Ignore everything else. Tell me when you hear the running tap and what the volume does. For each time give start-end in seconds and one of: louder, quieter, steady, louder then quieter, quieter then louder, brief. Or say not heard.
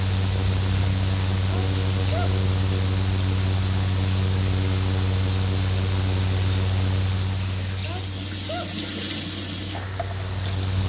0.0-10.8 louder.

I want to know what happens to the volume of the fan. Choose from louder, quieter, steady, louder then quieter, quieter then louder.
quieter.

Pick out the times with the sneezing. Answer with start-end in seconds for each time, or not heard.
1.4-2.4, 7.8-8.8.